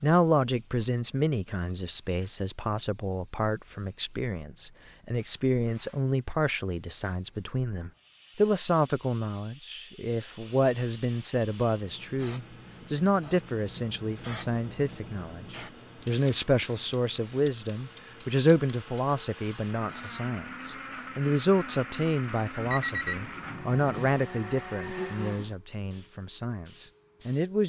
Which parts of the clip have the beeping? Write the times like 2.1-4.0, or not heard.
22.6-24.1.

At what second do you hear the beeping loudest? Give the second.
23 s.